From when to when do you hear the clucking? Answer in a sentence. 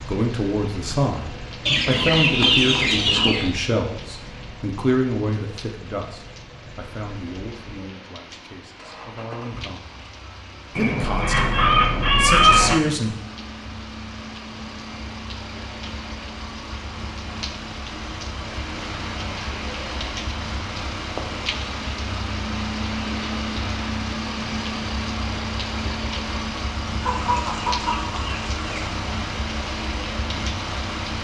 The clucking can be heard from 1.6 to 3.5 s, from 10.8 to 12.8 s and from 27.0 to 28.9 s.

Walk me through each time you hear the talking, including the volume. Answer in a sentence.
The talking can be heard from 0.1 to 9.9 s, getting quieter; and briefly from 10.7 to 13.2 s.